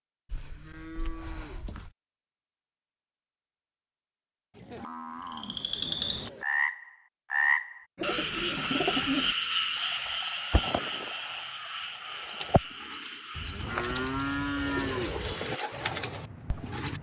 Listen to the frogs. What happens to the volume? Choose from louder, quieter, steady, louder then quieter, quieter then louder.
quieter.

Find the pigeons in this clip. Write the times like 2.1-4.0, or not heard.
8.0-16.9.